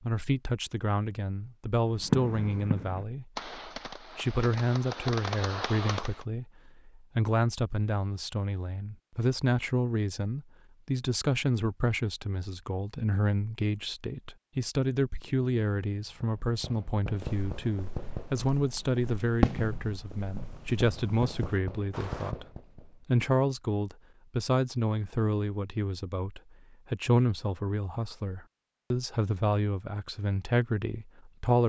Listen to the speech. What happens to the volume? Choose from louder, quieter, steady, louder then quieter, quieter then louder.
steady.